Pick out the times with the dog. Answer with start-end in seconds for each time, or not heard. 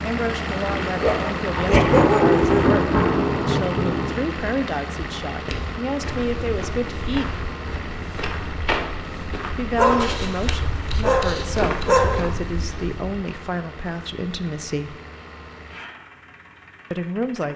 1.0-2.7, 9.8-12.3.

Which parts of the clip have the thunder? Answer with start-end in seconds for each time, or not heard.
0.7-4.2.